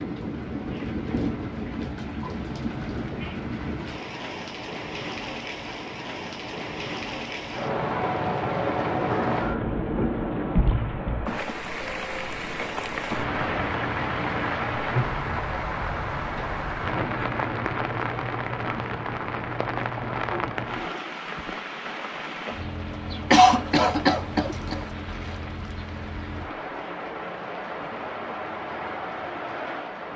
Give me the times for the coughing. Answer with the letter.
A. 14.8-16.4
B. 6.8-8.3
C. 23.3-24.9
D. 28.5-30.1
C.